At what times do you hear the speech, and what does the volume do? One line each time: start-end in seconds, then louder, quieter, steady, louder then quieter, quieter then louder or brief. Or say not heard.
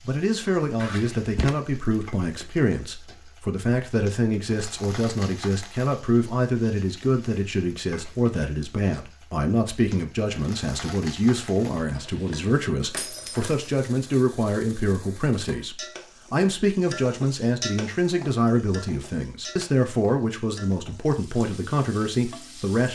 0.0-22.9 steady.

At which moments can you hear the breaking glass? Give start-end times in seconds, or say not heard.
0.8-1.5, 12.9-13.7.